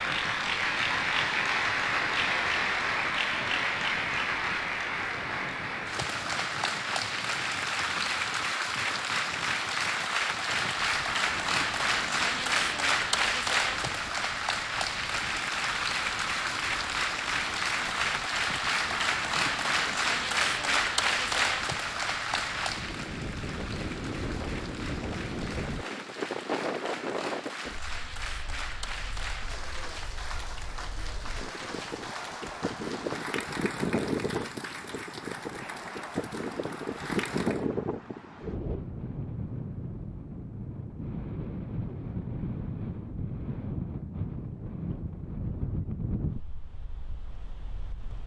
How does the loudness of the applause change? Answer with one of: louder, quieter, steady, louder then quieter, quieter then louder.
quieter.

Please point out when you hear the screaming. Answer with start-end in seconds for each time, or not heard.
not heard.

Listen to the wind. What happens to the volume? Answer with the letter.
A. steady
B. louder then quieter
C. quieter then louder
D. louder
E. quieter
D.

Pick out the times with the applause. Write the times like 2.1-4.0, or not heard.
0.0-37.6.